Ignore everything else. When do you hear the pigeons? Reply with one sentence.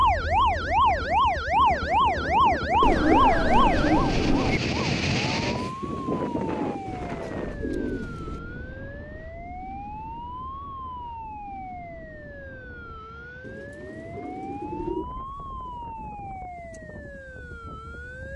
The pigeons can be heard from 2.8 to 4.6 s, from 6.8 to 8.4 s and from 13.4 to 15.1 s.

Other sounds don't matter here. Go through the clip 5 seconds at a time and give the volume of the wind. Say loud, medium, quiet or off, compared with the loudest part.
loud, loud, quiet, quiet.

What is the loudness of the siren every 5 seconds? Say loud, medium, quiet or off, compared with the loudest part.
loud, quiet, quiet, quiet.